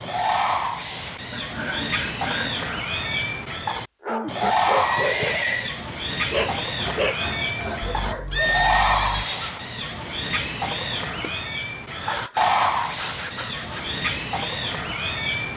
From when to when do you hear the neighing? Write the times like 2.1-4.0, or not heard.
4.8-5.8, 8.3-9.8.